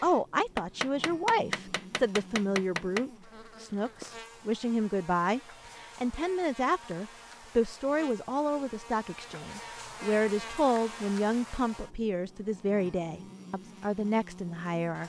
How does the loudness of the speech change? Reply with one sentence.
The volume of the speech stays about the same.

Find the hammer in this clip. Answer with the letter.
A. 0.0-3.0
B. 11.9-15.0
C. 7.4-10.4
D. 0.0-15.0
A.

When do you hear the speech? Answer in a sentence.
You can hear the speech from 0.0 to 15.0 s.